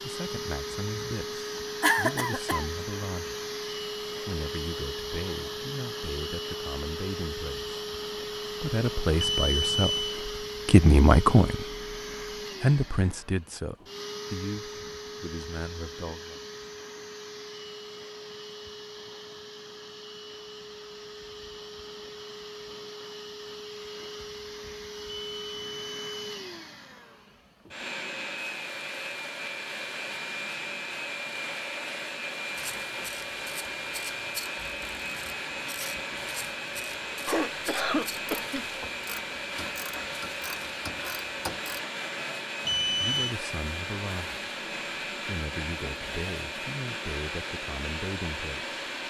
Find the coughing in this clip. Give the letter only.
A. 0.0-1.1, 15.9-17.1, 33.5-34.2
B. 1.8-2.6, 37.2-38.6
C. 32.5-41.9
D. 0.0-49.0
B.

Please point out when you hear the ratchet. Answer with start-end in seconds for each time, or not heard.
32.5-41.9.